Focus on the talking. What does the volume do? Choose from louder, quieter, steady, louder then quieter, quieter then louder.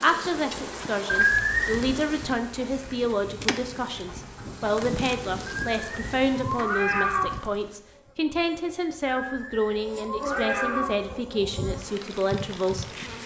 steady.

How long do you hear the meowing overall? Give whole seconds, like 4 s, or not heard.
4 s.